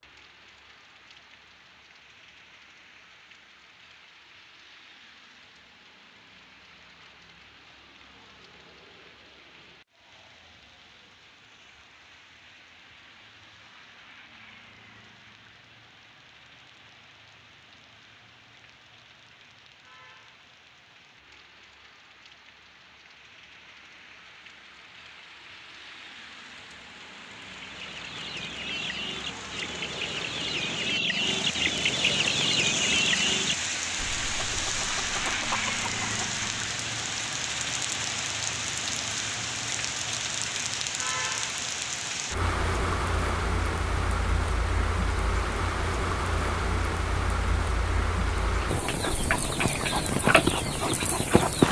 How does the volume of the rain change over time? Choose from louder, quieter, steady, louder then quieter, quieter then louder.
louder.